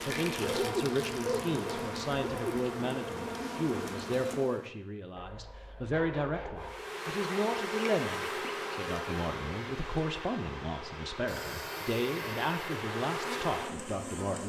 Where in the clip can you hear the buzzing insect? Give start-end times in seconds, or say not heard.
0.0-4.7, 6.5-14.4.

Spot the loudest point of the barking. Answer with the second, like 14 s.
1 s.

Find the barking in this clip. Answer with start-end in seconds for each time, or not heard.
0.4-2.6, 5.2-6.8, 11.2-12.8.